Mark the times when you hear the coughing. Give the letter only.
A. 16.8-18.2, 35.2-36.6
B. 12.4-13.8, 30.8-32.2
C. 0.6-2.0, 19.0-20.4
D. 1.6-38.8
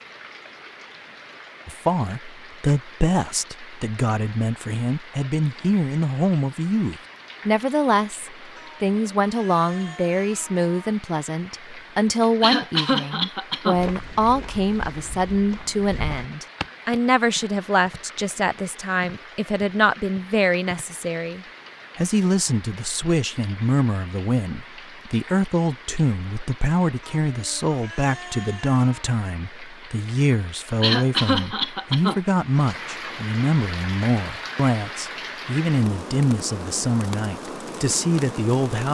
B.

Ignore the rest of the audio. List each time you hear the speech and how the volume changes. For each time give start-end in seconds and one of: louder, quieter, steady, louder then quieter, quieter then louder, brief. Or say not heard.
1.6-38.8 steady.